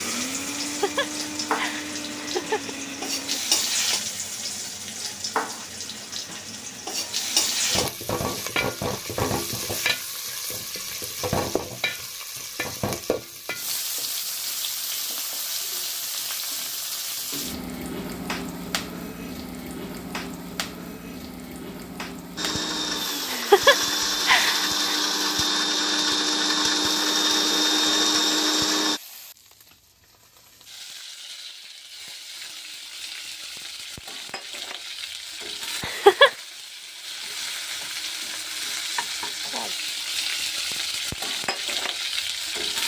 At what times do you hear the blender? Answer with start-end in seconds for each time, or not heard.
0.0-3.4, 22.4-29.0.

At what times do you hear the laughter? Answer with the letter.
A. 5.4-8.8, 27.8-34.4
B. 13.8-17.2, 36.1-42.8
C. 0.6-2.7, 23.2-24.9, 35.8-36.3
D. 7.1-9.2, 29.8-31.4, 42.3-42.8
C.